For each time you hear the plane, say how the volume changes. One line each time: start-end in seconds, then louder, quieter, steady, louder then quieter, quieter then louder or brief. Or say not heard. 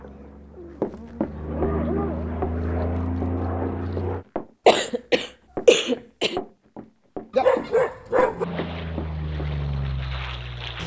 0.0-4.2 louder
8.3-10.8 brief.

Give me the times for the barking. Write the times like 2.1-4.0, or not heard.
0.0-2.3, 7.3-8.4.